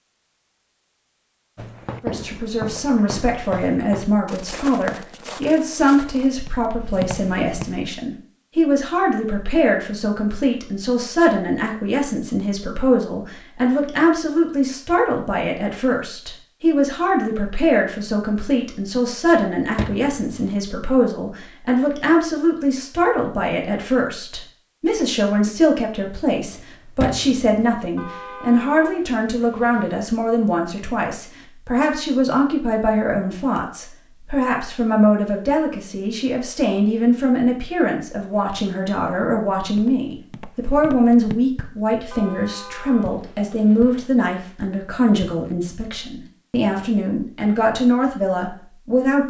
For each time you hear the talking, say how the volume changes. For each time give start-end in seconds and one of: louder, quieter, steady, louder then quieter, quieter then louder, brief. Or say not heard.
2.0-49.2 steady.